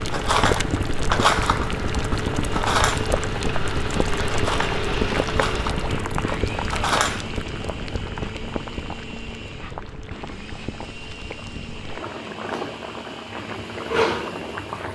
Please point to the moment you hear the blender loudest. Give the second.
5 s.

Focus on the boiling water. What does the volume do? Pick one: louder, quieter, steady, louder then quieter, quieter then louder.
quieter then louder.